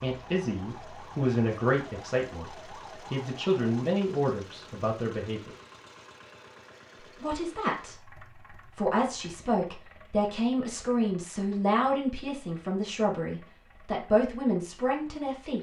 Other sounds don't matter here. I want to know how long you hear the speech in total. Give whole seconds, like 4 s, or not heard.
14 s.